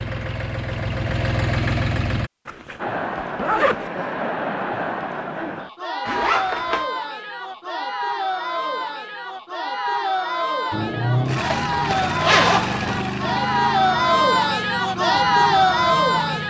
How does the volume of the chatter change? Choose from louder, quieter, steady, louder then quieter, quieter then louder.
louder.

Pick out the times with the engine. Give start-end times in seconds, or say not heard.
0.0-2.3, 10.7-16.4.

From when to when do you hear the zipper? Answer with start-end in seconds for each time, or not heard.
2.5-3.9, 6.0-6.8, 11.3-12.9.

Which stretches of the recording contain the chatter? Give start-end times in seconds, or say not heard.
2.8-16.4.